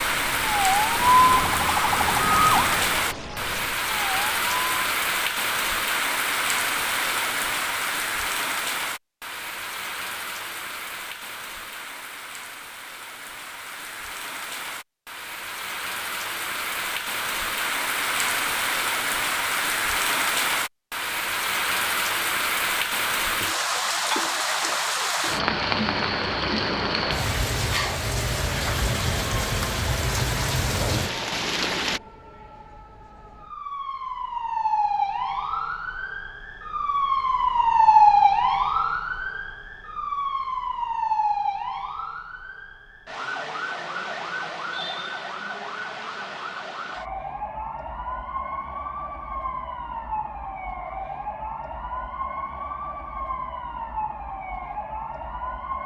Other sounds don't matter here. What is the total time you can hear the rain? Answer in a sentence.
You can hear the rain for 32 seconds altogether.